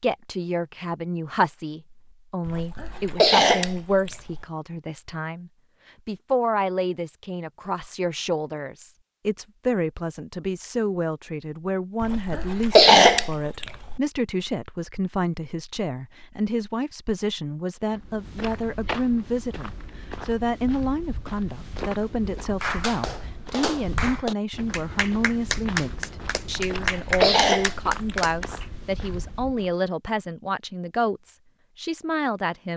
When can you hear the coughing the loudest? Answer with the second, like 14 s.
13 s.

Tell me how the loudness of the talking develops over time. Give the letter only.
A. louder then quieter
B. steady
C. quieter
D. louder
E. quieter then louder
B.